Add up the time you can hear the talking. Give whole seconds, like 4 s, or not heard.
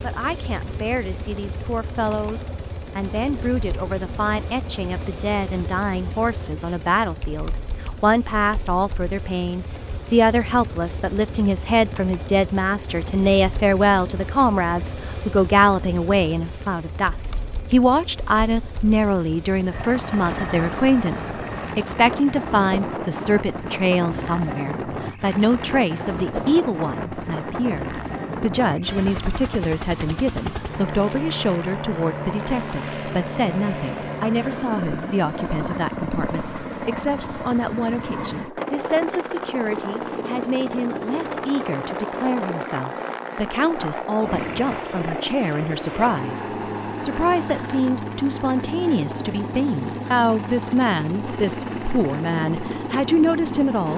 54 s.